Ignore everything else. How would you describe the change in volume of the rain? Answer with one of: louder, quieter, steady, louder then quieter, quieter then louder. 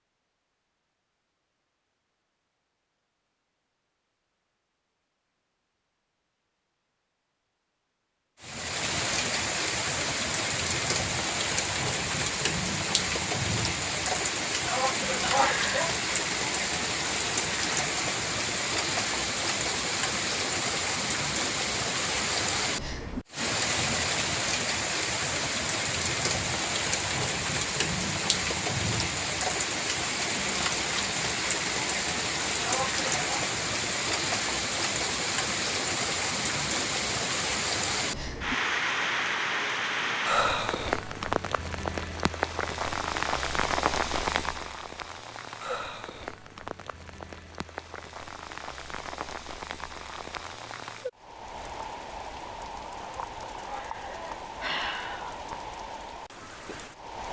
quieter.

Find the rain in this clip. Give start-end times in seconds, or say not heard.
8.4-57.2.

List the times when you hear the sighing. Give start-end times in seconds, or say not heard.
14.7-15.9, 32.6-33.5, 53.0-55.4.